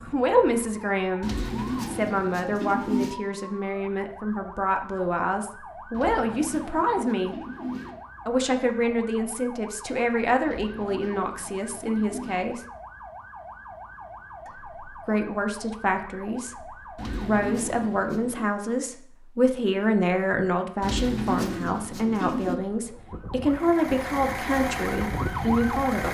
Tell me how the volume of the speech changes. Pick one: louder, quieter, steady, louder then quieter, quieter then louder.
steady.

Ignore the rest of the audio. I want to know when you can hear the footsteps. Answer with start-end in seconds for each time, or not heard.
not heard.